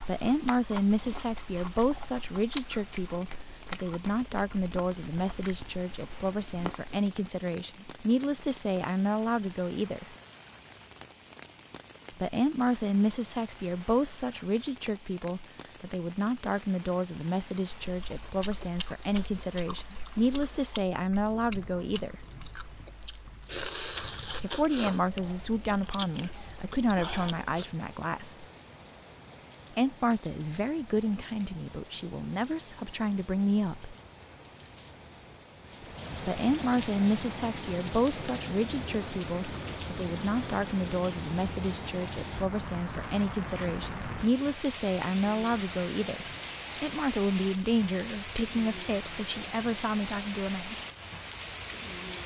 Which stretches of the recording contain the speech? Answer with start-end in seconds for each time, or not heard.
0.0-10.2, 12.2-22.2, 24.4-28.4, 29.7-34.0, 36.2-50.8.